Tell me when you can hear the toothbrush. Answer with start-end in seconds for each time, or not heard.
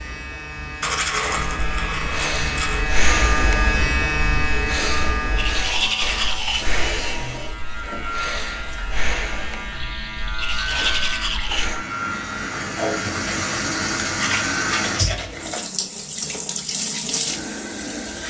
0.8-2.9, 5.3-6.7, 10.3-11.7, 14.1-15.7.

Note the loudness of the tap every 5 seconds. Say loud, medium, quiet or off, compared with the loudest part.
off, quiet, loud, loud.